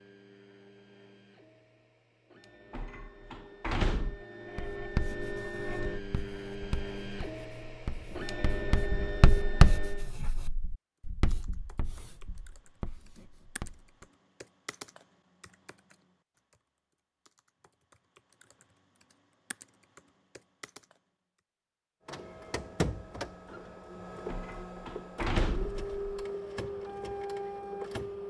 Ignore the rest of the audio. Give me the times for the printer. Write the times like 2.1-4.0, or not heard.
0.0-10.1, 22.1-28.2.